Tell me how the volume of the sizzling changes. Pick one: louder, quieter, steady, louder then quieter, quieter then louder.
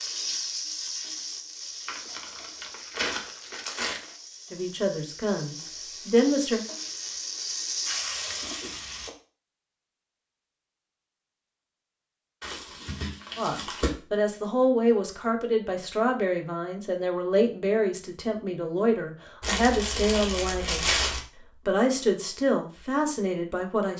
quieter then louder.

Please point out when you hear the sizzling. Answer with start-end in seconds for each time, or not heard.
0.0-9.1.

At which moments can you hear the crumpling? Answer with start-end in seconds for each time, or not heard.
1.9-4.1, 12.4-13.9, 19.4-21.2.